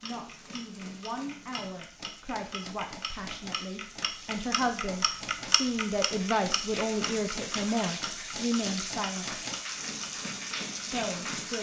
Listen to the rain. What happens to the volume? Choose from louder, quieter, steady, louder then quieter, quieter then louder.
louder.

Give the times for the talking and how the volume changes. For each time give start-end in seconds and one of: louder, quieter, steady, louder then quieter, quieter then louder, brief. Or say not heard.
0.0-9.4 louder
10.9-11.5 brief.